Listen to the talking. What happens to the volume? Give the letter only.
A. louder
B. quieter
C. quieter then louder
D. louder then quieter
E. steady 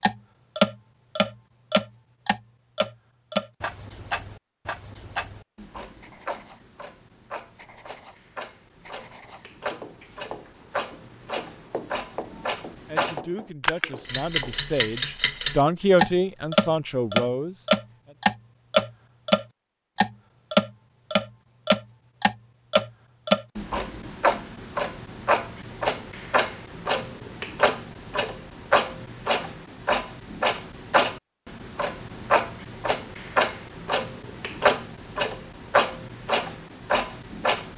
D.